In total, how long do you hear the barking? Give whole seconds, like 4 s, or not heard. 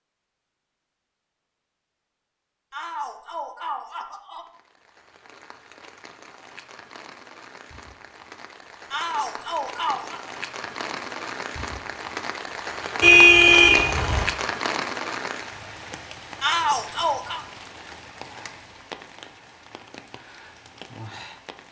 not heard.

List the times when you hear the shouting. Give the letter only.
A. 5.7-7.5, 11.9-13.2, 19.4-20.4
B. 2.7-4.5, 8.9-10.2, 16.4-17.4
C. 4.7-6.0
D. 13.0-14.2
B.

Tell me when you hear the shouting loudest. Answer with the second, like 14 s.
17 s.